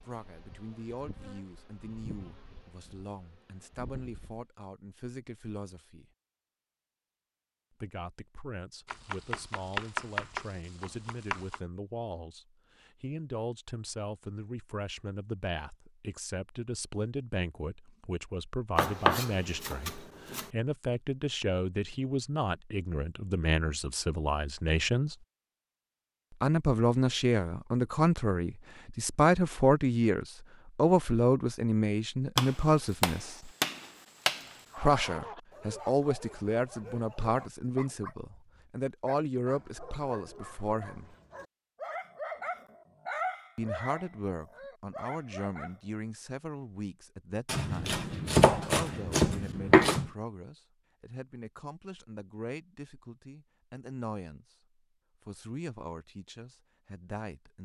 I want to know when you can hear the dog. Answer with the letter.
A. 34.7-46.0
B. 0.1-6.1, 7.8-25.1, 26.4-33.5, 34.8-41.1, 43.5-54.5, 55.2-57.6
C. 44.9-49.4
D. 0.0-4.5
A.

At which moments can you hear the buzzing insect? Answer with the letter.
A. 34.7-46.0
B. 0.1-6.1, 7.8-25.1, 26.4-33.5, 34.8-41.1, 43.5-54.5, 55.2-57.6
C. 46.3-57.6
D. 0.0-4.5
D.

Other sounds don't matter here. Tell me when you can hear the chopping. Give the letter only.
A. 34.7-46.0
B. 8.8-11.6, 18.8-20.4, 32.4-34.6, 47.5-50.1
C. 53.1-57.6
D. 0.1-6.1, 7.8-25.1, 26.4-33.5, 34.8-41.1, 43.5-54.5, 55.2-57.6
B.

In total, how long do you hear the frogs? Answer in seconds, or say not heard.
not heard.